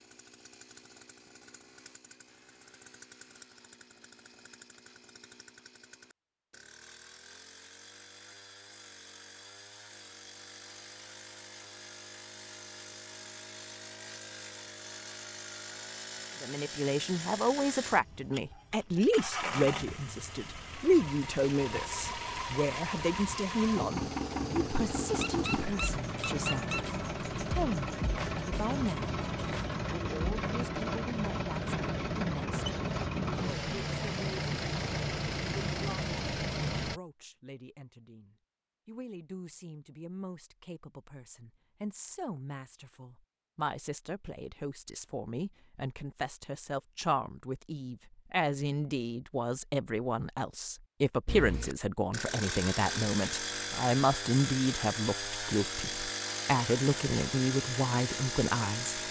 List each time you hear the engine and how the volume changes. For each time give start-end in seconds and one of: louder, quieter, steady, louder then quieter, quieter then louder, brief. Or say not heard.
0.0-37.0 louder
51.2-59.0 steady.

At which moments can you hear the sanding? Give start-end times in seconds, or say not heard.
not heard.